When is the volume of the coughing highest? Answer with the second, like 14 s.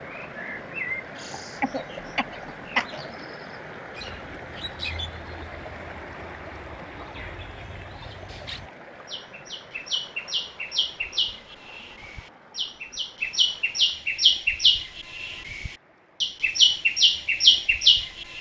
3 s.